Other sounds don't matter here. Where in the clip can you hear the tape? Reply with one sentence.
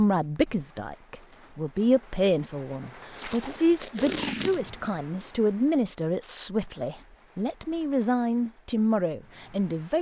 The tape can be heard from 3.1 to 4.8 s.